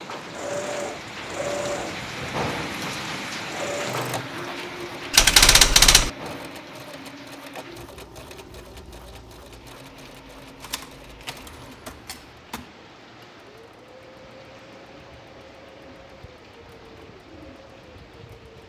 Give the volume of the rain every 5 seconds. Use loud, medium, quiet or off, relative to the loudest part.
loud, medium, quiet, quiet.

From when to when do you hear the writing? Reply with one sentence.
You can't hear the writing here.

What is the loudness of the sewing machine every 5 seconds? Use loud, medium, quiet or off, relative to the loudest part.
loud, medium, quiet, quiet.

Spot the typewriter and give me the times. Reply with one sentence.
The typewriter can be heard from 5.1 to 6.1 s and from 10.6 to 12.7 s.